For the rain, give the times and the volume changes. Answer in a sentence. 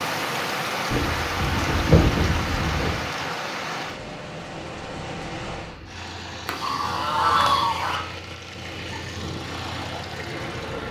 You can hear the rain from 0.0 to 5.8 s, getting quieter.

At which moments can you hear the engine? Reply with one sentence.
The engine can be heard from 5.5 to 10.8 s.